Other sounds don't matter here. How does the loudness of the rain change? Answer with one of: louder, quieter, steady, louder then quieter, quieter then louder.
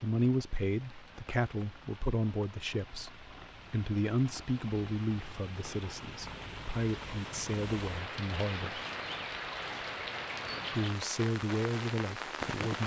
louder.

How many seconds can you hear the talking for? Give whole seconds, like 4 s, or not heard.
11 s.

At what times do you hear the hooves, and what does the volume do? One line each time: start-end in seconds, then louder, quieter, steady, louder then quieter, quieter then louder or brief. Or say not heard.
not heard.